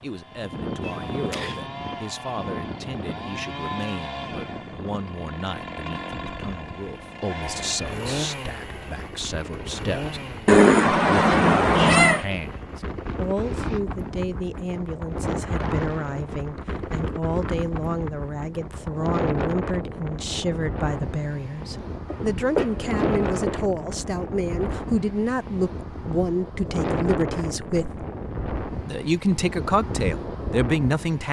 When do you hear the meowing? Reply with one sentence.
You can hear the meowing from 0.8 to 1.6 s, from 10.4 to 12.2 s and from 22.1 to 23.6 s.